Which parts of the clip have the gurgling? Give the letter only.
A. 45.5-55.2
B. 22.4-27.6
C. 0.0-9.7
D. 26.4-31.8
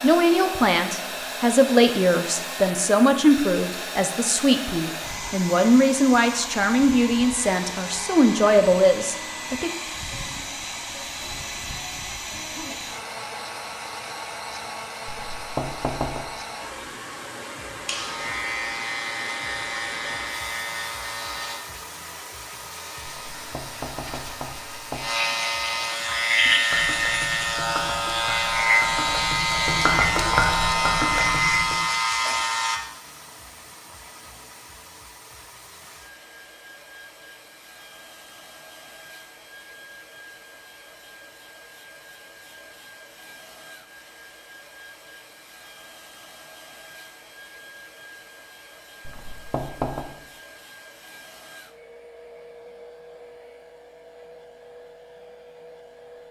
D.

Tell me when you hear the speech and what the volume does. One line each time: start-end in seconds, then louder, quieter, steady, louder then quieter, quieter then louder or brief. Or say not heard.
0.0-9.7 steady.